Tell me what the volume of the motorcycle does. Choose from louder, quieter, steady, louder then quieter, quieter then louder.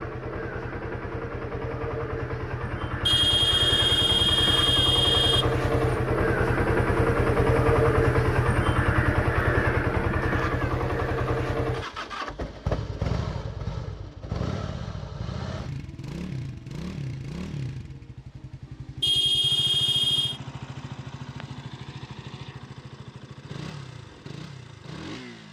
louder then quieter.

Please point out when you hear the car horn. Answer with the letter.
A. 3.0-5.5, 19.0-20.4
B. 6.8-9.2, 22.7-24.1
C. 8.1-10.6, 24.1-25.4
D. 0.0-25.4
A.